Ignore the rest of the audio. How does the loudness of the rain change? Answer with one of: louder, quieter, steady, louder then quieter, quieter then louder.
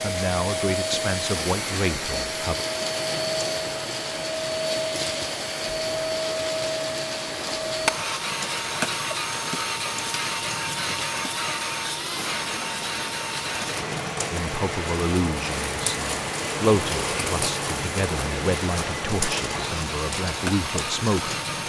louder.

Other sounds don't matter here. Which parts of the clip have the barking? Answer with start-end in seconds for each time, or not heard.
not heard.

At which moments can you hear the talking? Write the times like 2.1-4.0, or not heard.
0.0-2.6, 14.3-21.6.